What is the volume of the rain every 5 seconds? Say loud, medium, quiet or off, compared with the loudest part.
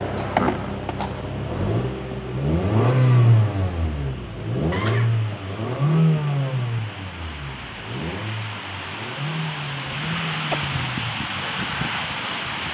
quiet, medium, loud.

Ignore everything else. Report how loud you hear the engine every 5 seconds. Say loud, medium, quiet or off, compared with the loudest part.
loud, loud, medium.